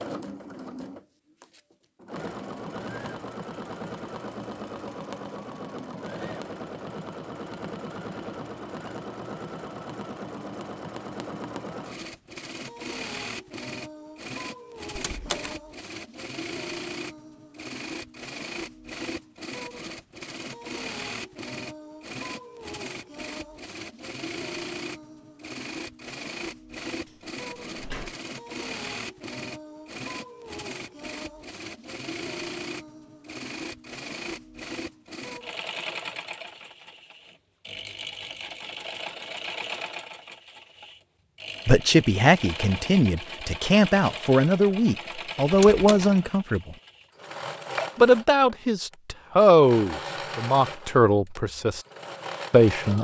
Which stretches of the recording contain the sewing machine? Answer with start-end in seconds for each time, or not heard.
0.0-52.9.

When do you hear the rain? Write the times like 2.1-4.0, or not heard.
not heard.